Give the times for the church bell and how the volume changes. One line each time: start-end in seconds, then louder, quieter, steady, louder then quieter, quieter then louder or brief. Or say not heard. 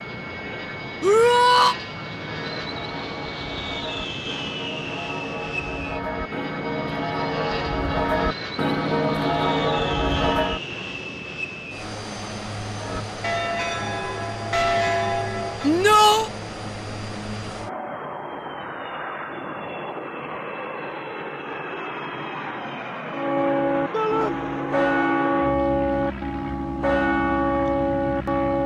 2.2-10.6 louder
12.8-15.7 brief
23.1-28.6 steady.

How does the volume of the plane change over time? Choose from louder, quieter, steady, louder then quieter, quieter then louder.
steady.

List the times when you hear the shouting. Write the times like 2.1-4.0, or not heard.
1.0-1.8, 15.6-16.3, 23.9-24.4.